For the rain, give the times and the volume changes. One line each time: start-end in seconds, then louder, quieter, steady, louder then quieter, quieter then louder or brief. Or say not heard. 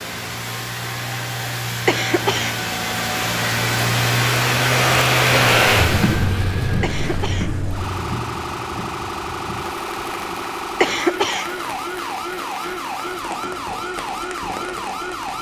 0.0-15.3 louder then quieter.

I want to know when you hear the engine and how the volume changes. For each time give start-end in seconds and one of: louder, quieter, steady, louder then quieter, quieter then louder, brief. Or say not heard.
0.0-6.3 louder.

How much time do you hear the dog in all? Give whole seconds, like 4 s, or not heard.
not heard.